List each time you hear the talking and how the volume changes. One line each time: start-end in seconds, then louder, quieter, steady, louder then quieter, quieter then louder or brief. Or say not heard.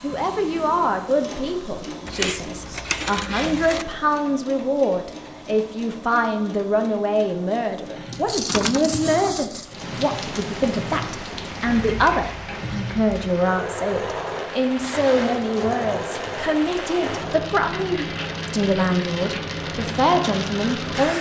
0.0-21.1 steady.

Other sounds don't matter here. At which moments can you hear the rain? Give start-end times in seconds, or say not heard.
9.7-21.1.